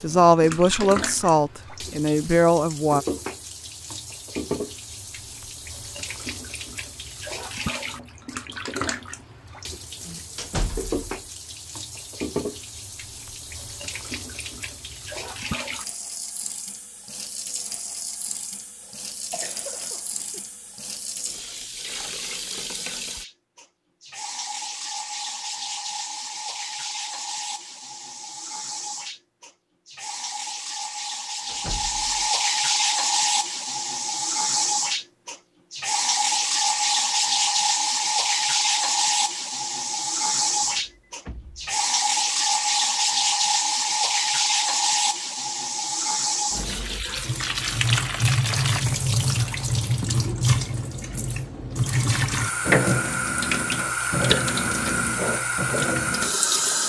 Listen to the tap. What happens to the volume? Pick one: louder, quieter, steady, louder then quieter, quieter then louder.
louder.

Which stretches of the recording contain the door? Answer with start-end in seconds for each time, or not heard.
10.3-11.1, 31.4-32.2, 40.6-41.8.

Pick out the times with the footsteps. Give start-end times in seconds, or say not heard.
not heard.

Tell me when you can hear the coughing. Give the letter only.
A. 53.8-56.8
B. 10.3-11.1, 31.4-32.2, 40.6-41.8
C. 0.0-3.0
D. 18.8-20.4
D.